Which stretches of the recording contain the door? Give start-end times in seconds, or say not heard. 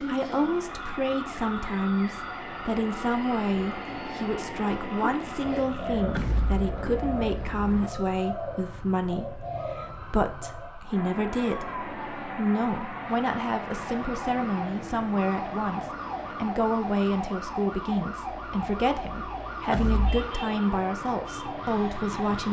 6.2-6.7, 19.7-20.2.